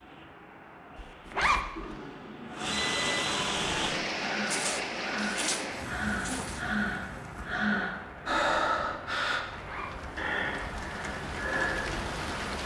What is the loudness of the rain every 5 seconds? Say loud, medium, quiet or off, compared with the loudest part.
loud, medium, loud.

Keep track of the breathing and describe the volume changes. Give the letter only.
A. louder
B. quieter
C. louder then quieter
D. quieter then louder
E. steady
C.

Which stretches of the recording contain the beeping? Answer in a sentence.
You can hear the beeping from 1.8 to 3.3 s.